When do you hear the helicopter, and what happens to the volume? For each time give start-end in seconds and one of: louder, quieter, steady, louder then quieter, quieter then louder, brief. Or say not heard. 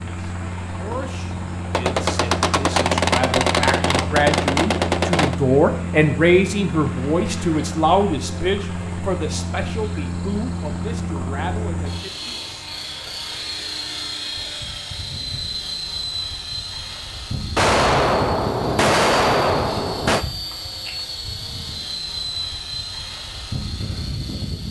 0.0-24.6 steady.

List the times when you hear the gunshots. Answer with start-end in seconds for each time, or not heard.
1.7-5.3, 17.6-20.2.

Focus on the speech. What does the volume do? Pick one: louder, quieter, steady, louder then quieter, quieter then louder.
louder then quieter.